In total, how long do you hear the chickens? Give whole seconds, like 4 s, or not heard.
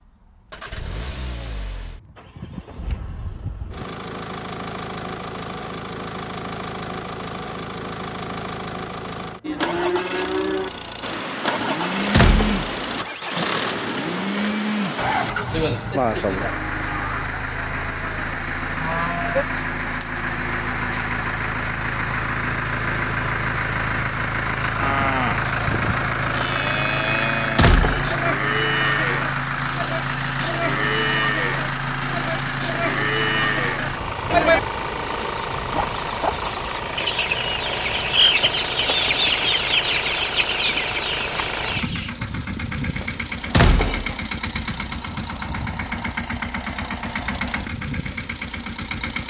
7 s.